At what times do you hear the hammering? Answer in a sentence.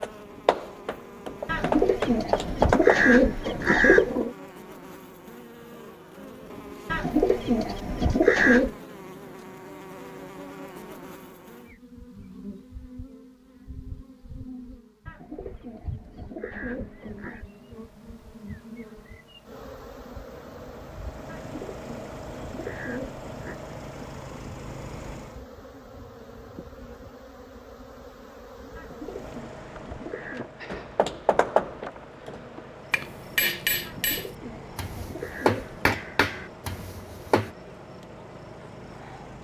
The hammering can be heard from 0.0 to 3.1 s and from 30.7 to 37.5 s.